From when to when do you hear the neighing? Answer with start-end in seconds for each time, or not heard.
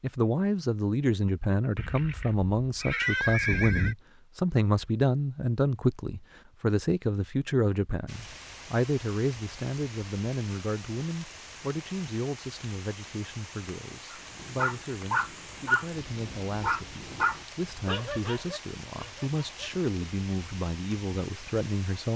1.8-4.0.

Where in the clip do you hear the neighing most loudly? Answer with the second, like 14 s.
3 s.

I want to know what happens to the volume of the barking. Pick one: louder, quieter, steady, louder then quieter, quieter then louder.
quieter.